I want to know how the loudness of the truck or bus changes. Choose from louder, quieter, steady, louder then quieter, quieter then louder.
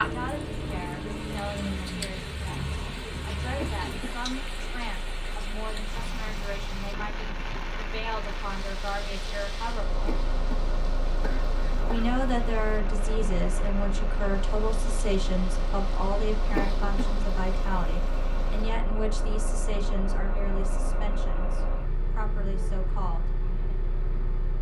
quieter then louder.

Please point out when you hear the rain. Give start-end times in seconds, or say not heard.
0.0-18.8.